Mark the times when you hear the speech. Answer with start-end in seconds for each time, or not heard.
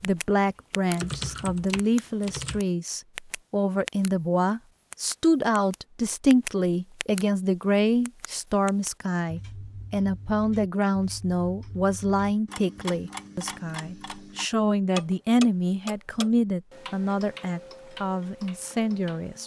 0.0-19.4.